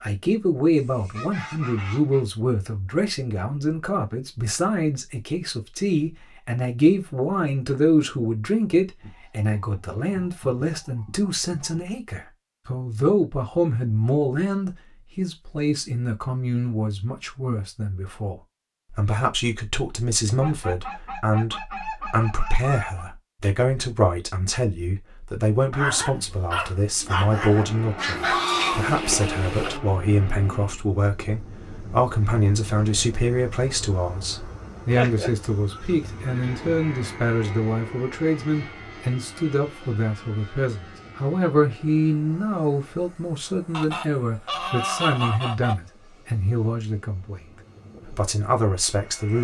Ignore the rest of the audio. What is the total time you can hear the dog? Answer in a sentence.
You can hear the dog for 2 seconds altogether.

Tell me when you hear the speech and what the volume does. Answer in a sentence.
You can hear the speech from 0.0 to 47.5 s, at a steady volume; and briefly from 48.1 to 49.4 s.